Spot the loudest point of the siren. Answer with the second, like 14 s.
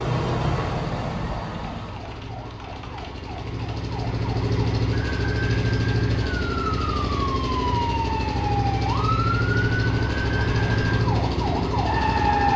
12 s.